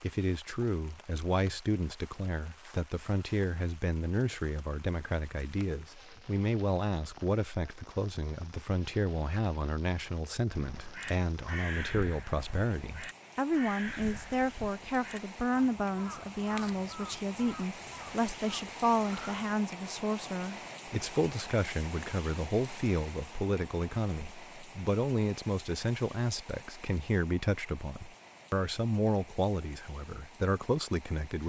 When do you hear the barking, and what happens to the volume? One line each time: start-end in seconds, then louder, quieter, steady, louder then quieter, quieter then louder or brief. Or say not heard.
not heard.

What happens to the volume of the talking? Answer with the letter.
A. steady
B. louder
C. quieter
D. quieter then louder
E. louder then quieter
A.